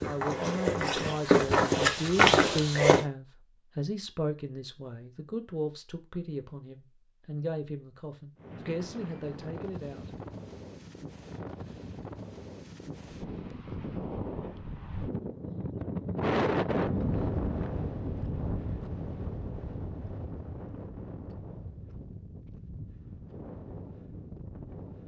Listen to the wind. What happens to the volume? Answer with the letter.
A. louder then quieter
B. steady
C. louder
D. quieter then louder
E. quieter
A.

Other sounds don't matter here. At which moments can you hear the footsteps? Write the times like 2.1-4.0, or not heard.
0.0-3.0.